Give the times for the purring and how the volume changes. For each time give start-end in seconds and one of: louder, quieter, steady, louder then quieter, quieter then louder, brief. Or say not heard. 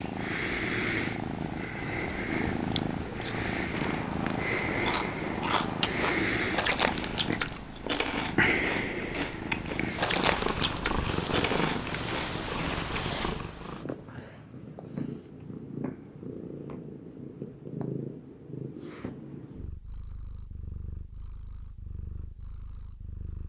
0.0-23.4 quieter.